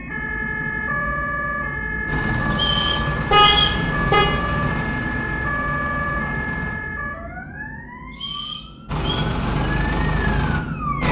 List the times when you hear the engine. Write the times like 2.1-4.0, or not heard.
2.0-6.8, 8.8-11.0.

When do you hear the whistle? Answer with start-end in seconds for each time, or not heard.
2.5-3.8, 8.1-9.2.